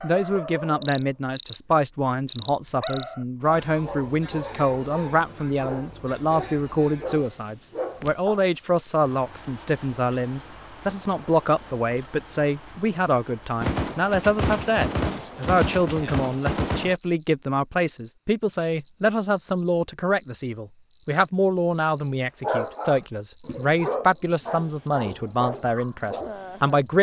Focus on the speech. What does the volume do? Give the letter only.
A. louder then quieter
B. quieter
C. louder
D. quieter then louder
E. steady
E.